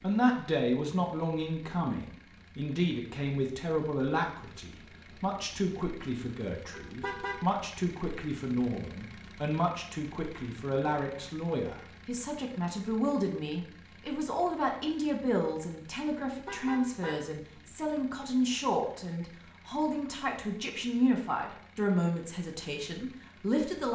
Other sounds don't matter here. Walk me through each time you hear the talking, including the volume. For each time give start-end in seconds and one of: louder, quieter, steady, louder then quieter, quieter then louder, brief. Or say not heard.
0.0-23.8 steady.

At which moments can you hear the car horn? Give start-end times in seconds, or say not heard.
6.7-7.5, 16.2-17.4.